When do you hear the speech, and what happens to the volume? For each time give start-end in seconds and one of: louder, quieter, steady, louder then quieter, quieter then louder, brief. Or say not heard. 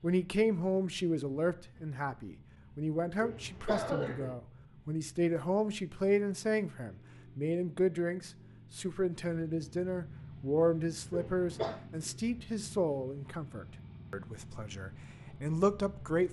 0.0-16.2 steady.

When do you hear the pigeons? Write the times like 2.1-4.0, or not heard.
not heard.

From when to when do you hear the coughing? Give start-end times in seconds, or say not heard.
3.2-4.3, 11.1-11.8.